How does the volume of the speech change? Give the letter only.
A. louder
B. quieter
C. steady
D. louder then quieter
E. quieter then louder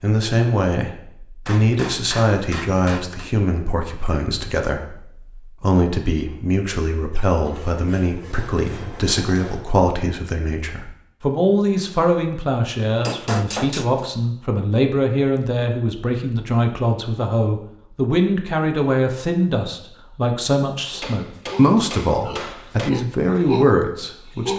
C.